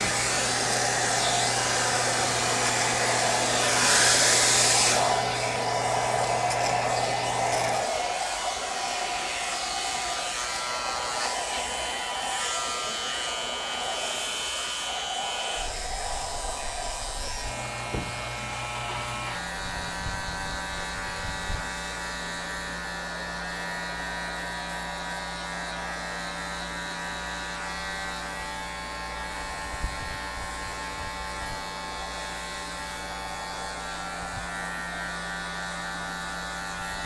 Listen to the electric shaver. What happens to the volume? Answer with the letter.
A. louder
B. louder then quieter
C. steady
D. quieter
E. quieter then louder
C.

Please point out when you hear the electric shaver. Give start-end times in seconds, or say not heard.
0.0-37.0.